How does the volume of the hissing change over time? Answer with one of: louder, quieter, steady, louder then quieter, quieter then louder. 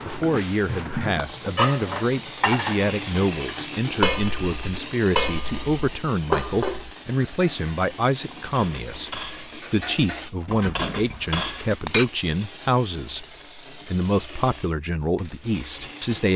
quieter.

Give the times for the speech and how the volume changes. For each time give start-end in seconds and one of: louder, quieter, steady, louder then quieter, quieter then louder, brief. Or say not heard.
0.1-16.3 steady.